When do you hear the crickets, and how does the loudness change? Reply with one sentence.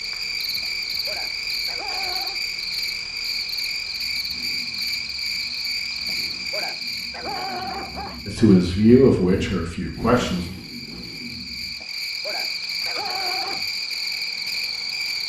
The crickets can be heard from 0.0 to 15.2 s, getting quieter then louder.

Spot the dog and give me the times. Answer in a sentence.
You can hear the dog from 0.6 to 2.4 s, from 6.0 to 8.2 s and from 11.8 to 13.7 s.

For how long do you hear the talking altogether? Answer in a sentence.
The talking can be heard for 2 seconds in total.